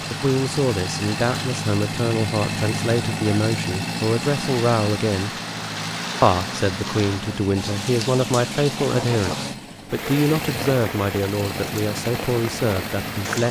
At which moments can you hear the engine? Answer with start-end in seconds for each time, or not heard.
0.0-13.4.